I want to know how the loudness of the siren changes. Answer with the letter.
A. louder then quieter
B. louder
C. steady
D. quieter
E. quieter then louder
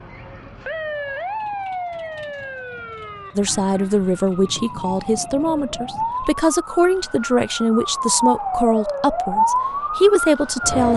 E.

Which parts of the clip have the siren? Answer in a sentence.
You can hear the siren from 0.0 to 10.9 s.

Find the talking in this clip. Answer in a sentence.
You can hear the talking from 3.4 to 10.9 s.